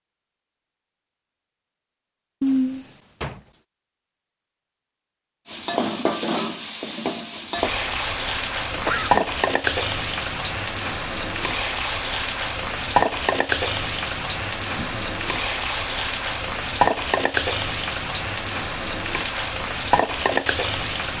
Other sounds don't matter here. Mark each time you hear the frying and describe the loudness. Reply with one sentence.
You can hear the frying from 5.5 to 21.1 s, at a steady volume.